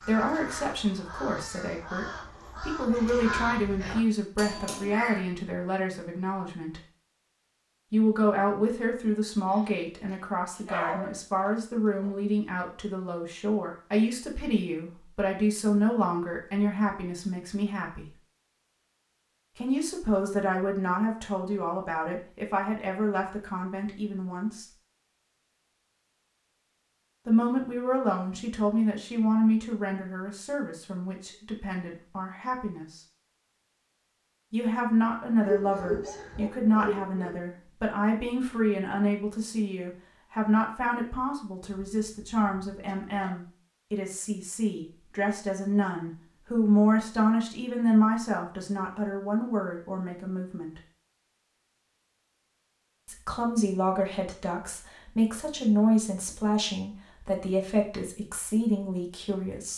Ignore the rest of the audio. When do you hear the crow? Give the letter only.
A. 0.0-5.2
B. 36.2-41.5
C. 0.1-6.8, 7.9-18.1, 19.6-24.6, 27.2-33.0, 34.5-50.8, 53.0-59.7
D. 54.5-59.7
A.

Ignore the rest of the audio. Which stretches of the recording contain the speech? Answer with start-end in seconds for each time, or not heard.
0.1-6.8, 7.9-18.1, 19.6-24.6, 27.2-33.0, 34.5-50.8, 53.0-59.7.